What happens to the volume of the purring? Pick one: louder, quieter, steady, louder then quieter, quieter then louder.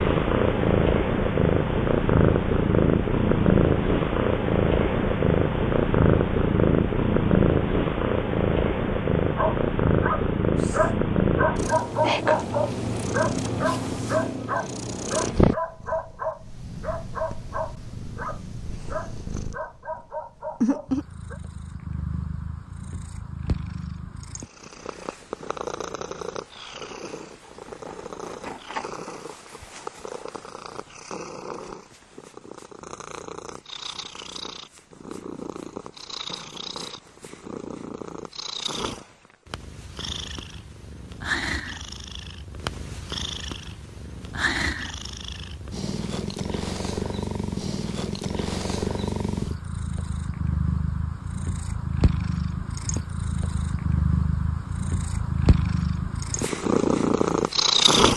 quieter then louder.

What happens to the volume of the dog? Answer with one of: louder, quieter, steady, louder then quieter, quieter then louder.
quieter.